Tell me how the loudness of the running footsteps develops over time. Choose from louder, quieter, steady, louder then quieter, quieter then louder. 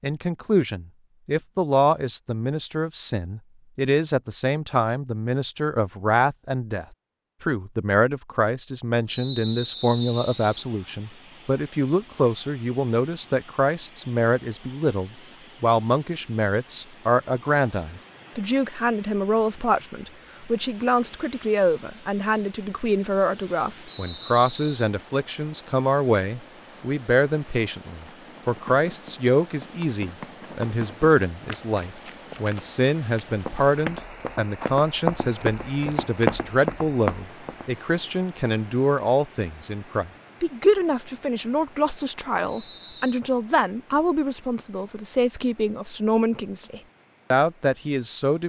louder.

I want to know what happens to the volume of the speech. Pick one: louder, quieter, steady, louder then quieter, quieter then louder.
steady.